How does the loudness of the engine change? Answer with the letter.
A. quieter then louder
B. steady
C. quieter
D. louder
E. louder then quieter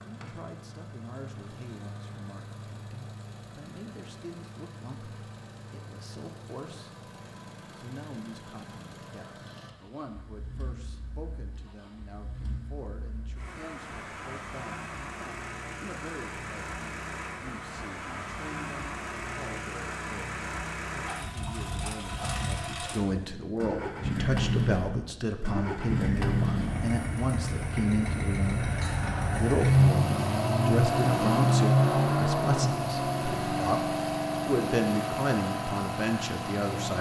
D.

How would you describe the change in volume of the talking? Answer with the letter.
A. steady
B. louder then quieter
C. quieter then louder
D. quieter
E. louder
E.